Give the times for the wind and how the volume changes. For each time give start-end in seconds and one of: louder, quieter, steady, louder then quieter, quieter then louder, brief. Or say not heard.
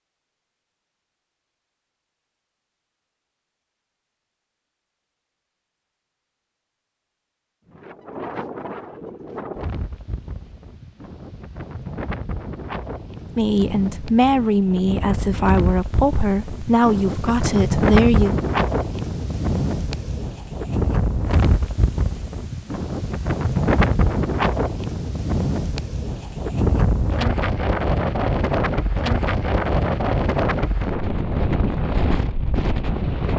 7.7-33.3 louder.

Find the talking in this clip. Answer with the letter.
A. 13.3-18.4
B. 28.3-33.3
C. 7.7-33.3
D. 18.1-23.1
A.